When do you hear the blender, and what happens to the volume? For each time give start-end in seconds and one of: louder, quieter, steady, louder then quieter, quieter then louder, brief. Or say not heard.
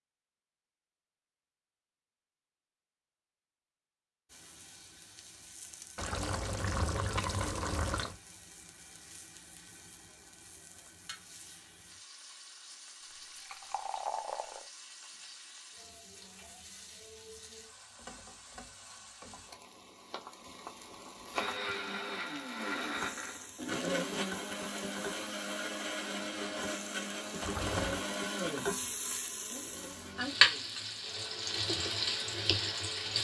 21.3-33.1 quieter.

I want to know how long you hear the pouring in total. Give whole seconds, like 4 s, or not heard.
4 s.